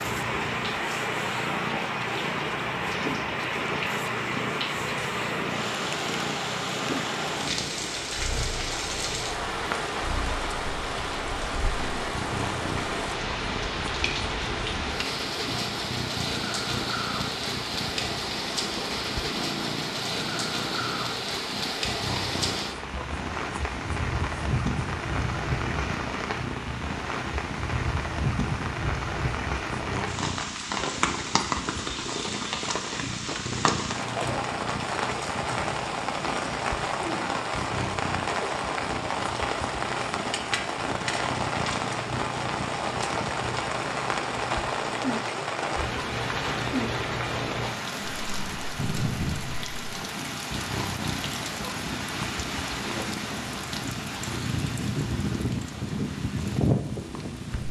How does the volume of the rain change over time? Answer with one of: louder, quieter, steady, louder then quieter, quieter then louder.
steady.